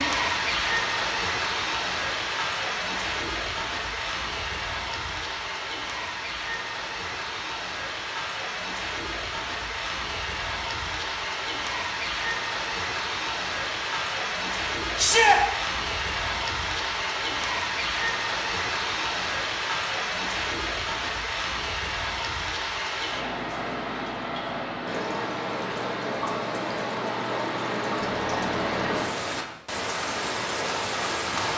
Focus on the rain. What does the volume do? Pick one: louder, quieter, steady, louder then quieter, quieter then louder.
steady.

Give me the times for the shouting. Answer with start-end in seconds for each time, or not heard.
14.9-15.4.